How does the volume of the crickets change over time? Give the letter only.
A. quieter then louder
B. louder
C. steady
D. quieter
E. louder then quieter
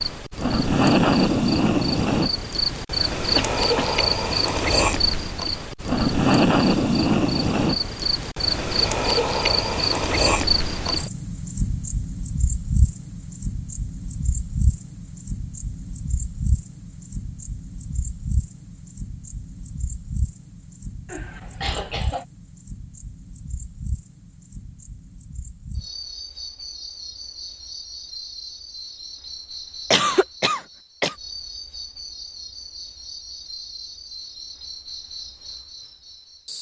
D.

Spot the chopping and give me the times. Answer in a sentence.
You can't hear the chopping here.